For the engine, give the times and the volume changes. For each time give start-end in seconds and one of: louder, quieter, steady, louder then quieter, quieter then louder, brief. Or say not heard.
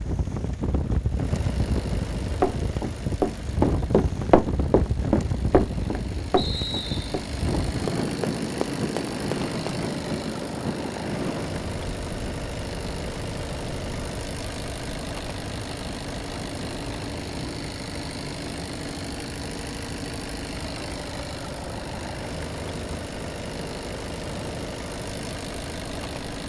0.0-26.4 louder.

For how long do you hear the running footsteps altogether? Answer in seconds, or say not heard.
7 s.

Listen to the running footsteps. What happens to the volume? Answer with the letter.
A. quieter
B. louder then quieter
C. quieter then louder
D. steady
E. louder
A.